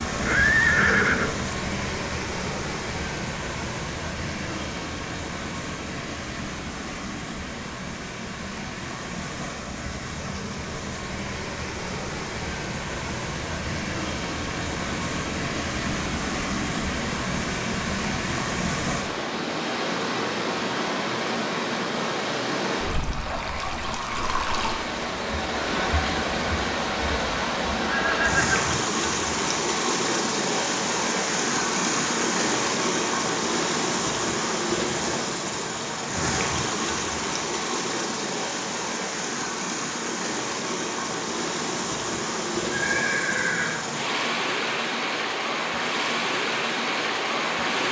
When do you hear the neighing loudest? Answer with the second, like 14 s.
1 s.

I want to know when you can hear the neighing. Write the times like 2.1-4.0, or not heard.
0.1-1.4, 27.9-28.8, 42.7-43.9.